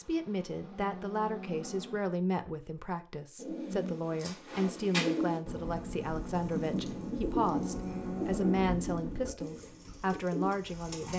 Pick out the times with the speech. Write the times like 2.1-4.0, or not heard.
0.0-11.1.